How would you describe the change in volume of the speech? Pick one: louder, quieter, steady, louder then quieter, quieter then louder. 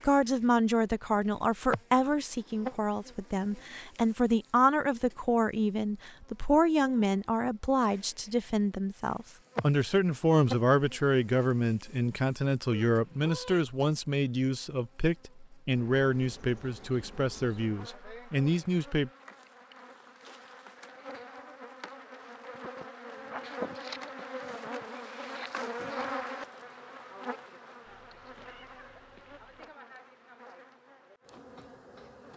steady.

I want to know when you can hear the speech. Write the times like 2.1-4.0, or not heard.
0.0-19.1.